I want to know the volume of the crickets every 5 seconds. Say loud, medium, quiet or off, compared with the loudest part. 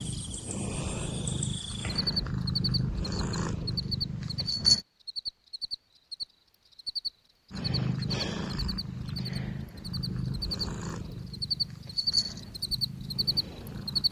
medium, medium, loud.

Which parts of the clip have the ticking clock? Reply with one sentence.
The ticking clock can't be heard in this clip.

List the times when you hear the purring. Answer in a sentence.
The purring can be heard from 0.0 to 4.8 s and from 7.5 to 14.0 s.